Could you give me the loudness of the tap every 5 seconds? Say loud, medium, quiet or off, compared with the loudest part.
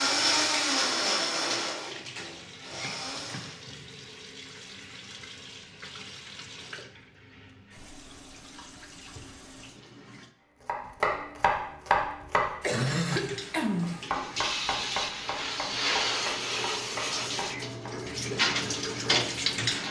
quiet, quiet, medium, loud.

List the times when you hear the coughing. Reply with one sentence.
The coughing can be heard from 12.6 to 14.1 s.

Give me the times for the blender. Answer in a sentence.
You can hear the blender from 0.0 to 3.6 s.